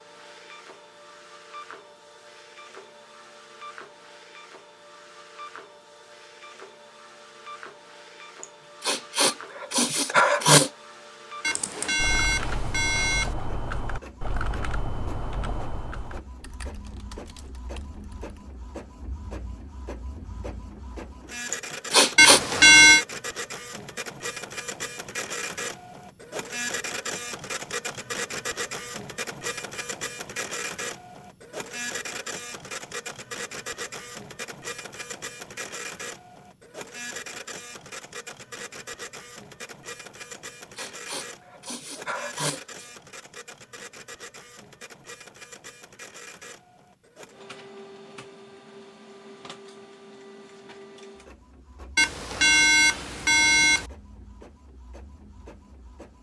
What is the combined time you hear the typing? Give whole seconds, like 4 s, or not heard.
7 s.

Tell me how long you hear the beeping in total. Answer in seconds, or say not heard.
5 s.